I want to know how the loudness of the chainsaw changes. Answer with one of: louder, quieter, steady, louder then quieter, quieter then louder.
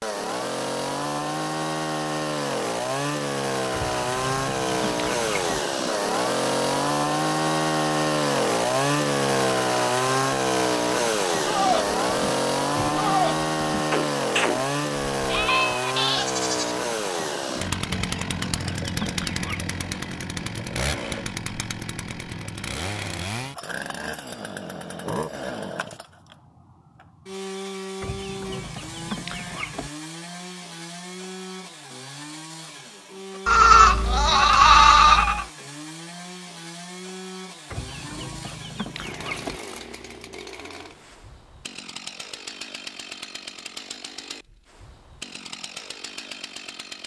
quieter.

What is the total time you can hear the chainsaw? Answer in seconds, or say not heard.
47 s.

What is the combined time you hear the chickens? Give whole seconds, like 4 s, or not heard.
7 s.